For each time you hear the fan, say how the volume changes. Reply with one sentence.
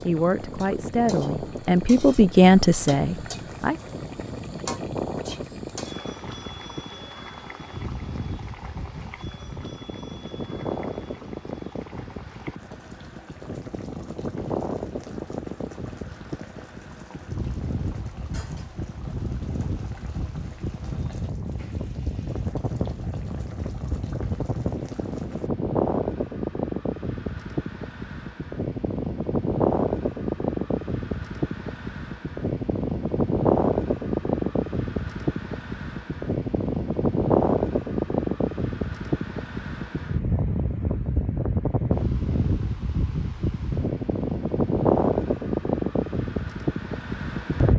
You can hear the fan from 0.0 to 47.7 s, getting louder.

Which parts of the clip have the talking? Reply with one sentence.
The talking can be heard from 0.0 to 3.8 s.